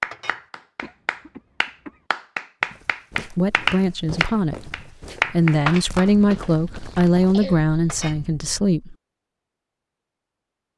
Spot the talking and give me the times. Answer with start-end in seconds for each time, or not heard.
3.2-4.7, 5.3-8.9.